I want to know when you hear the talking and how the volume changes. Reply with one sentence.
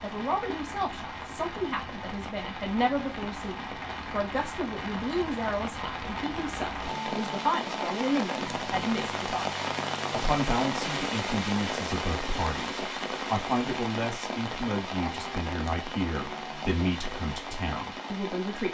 The talking can be heard from 0.0 to 18.7 s, at a steady volume.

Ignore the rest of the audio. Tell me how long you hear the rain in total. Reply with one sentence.
The rain can be heard for 19 seconds in total.